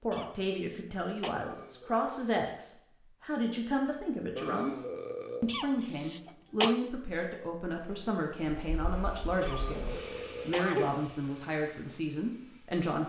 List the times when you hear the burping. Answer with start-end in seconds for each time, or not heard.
1.3-2.4, 4.3-5.6, 9.4-10.7.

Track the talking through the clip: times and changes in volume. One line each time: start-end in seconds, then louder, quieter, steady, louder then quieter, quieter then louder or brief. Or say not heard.
0.0-4.8 steady
5.4-13.0 steady.